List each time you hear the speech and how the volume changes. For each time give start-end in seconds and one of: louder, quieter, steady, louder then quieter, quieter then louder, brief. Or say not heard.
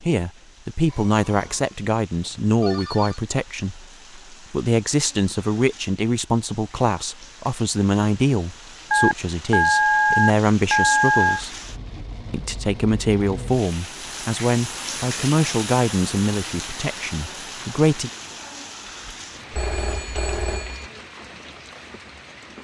0.0-11.6 steady
12.3-18.1 quieter.